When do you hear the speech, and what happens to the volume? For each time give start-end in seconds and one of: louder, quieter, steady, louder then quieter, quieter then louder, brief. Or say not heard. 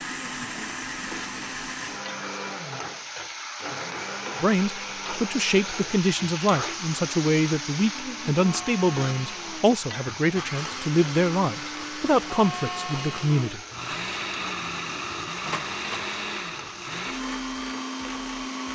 4.4-13.6 steady.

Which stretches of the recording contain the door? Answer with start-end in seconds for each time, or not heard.
15.4-16.1.